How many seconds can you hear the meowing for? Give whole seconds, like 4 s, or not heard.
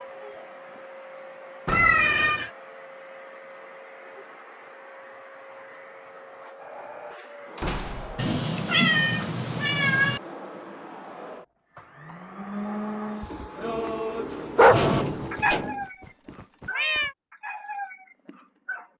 5 s.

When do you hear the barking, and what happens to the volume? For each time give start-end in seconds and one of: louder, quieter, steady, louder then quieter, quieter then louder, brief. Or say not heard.
13.4-18.9 quieter.